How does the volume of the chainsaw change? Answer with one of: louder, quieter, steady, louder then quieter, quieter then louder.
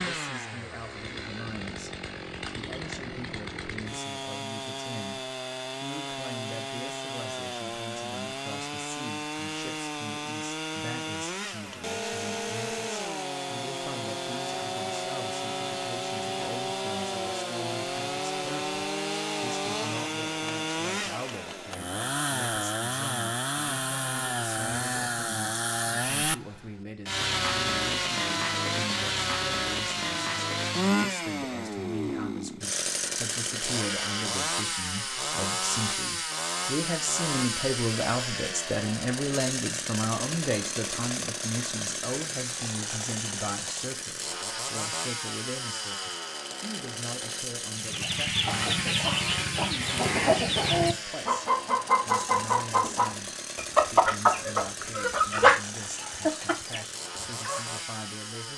louder then quieter.